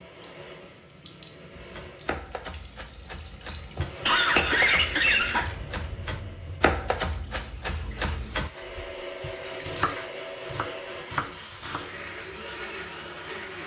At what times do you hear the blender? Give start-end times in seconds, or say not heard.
0.0-2.2, 3.8-6.8, 8.4-13.6.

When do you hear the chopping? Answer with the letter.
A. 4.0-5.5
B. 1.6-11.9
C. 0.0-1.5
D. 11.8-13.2
B.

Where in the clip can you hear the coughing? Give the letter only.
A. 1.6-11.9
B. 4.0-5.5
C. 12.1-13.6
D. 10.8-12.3
B.